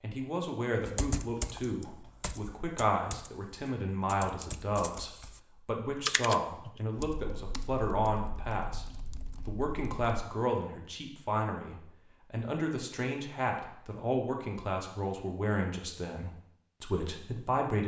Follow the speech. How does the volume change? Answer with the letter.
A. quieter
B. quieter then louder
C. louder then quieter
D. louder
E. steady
E.